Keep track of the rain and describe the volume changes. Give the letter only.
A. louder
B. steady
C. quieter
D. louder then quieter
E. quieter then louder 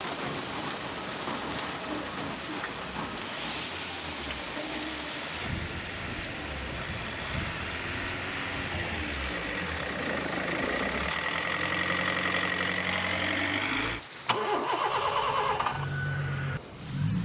C.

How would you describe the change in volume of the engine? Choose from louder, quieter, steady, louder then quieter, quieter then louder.
louder.